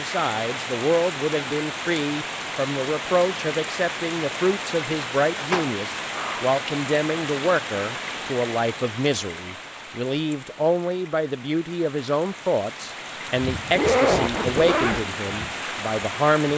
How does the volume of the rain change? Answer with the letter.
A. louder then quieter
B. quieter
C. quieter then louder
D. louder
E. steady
C.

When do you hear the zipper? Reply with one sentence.
You can hear the zipper from 5.3 to 6.5 s and from 13.8 to 15.1 s.